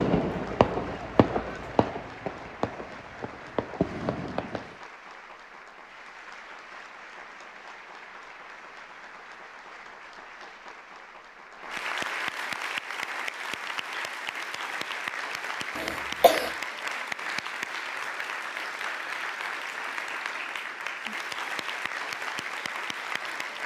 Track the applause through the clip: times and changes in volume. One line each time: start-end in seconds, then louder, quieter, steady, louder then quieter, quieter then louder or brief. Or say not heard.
0.0-23.6 louder.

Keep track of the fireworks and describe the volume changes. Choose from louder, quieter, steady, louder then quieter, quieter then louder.
quieter then louder.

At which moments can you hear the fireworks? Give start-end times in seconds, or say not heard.
0.0-4.8.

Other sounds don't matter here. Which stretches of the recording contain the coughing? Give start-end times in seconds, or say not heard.
15.8-16.6.